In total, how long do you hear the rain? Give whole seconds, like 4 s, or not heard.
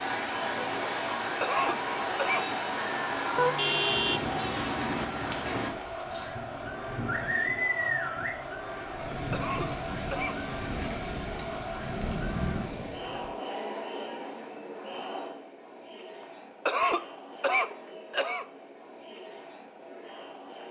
13 s.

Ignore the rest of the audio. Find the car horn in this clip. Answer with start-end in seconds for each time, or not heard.
3.4-4.5.